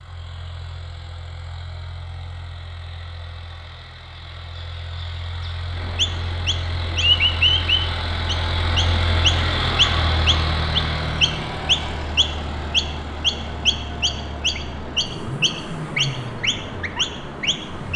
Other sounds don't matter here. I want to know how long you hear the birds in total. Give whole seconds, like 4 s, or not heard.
12 s.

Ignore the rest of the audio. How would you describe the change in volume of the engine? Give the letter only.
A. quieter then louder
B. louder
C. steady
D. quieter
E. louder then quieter
E.